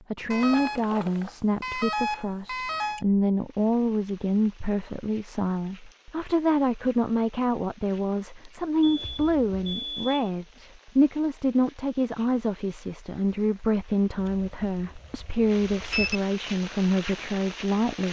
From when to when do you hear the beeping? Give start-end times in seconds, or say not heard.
0.3-3.0, 8.8-10.3, 14.2-16.2.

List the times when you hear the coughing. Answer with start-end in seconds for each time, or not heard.
not heard.